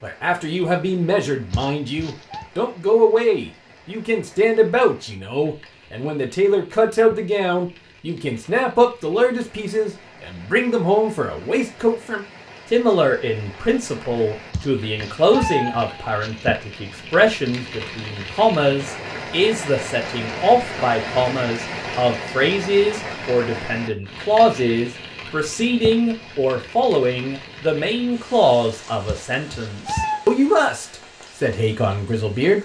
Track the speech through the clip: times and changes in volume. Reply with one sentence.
The speech can be heard from 0.0 to 32.5 s, at a steady volume.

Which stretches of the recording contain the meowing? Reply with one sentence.
You can hear the meowing from 1.5 to 2.5 s, from 14.5 to 16.4 s and from 29.1 to 30.2 s.